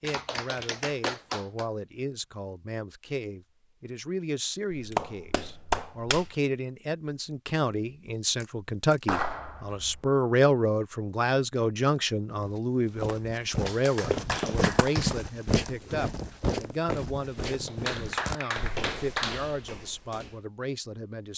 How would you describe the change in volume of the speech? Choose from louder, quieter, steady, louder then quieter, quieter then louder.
louder then quieter.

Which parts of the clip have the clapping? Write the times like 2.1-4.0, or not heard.
0.1-1.6, 4.7-6.3, 9.1-10.0, 13.7-15.2, 17.4-19.4.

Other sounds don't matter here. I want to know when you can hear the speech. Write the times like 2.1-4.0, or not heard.
0.0-21.3.